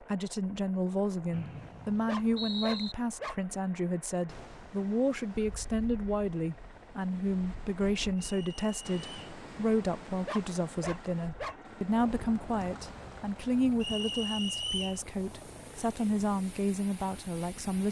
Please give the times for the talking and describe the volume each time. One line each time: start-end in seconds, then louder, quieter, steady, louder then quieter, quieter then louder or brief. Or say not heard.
0.1-17.8 steady.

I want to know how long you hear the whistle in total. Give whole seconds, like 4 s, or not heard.
4 s.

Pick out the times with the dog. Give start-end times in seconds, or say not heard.
2.0-3.4, 10.2-11.6.